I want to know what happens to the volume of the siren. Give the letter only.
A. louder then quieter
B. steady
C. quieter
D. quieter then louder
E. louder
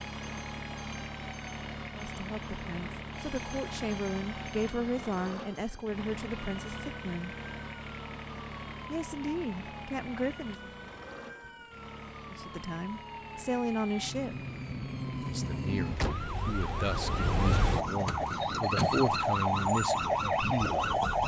E.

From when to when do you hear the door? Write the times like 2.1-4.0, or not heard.
18.1-19.0.